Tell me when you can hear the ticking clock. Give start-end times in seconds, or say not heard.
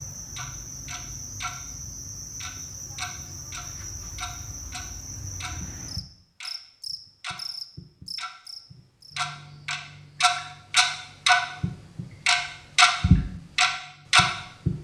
0.1-1.6, 2.4-14.8.